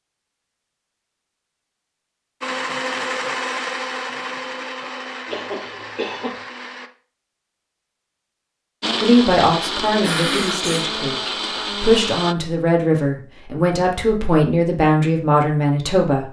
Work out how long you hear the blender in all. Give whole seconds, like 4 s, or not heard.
8 s.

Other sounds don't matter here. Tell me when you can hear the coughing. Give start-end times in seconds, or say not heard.
5.3-6.4, 9.8-10.9.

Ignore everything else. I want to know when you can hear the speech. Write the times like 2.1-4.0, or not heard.
9.0-16.2.